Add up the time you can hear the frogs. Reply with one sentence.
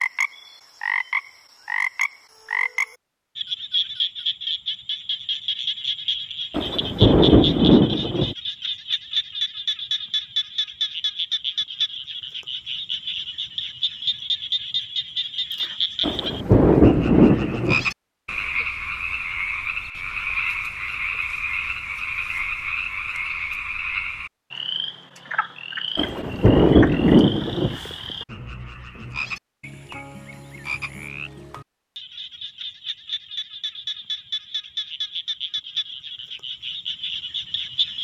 The frogs can be heard for 38 seconds in total.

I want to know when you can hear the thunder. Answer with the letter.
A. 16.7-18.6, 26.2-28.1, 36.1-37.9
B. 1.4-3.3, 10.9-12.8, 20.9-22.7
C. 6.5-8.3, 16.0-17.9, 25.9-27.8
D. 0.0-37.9
C.